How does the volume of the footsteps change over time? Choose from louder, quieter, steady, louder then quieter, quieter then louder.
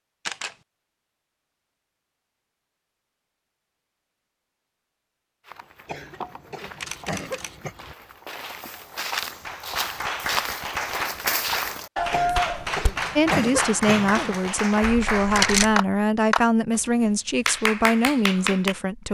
quieter then louder.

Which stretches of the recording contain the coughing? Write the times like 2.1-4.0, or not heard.
5.8-7.8, 12.1-14.4.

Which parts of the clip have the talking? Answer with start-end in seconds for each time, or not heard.
13.2-19.0.